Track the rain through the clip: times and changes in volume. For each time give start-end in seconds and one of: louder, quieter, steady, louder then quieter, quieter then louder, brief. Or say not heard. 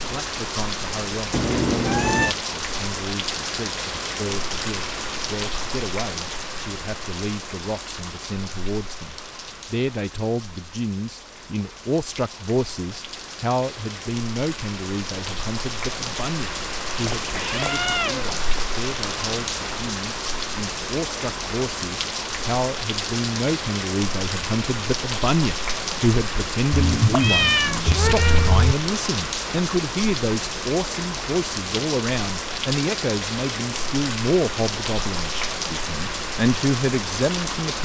0.0-37.7 quieter then louder.